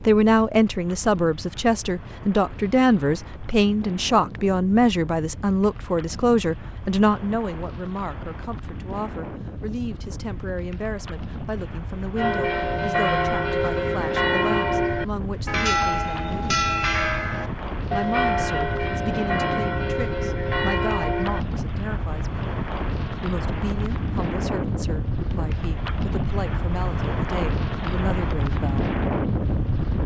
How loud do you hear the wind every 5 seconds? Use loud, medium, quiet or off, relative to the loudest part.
quiet, medium, medium, medium, loud, loud.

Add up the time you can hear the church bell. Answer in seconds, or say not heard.
9 s.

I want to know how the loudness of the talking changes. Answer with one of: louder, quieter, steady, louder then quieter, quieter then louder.
quieter.